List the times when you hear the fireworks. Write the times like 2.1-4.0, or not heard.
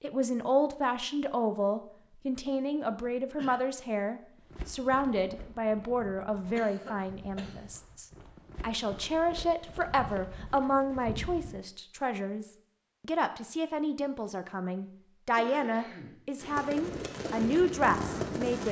16.4-18.6.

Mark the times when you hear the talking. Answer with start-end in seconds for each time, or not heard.
0.0-18.6.